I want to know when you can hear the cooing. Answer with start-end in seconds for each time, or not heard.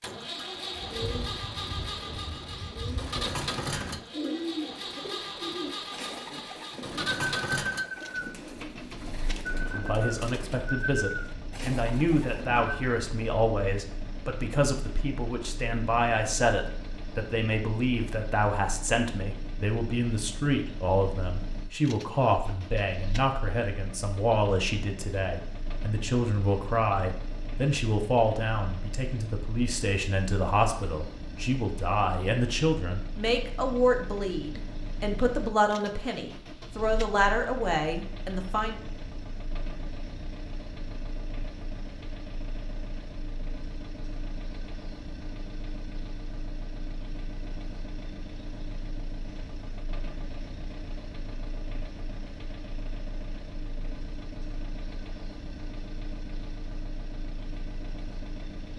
0.8-12.8.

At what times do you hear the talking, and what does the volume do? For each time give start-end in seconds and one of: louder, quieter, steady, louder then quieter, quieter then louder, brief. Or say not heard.
9.7-38.8 steady.